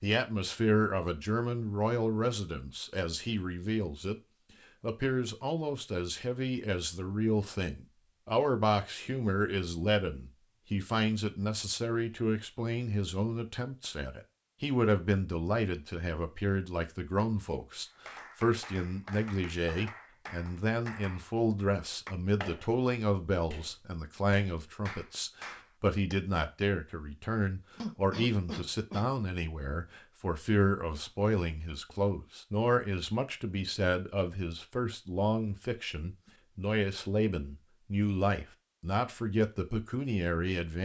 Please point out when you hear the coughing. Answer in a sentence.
The coughing can be heard from 27.8 to 29.1 s.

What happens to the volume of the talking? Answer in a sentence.
The volume of the talking stays about the same.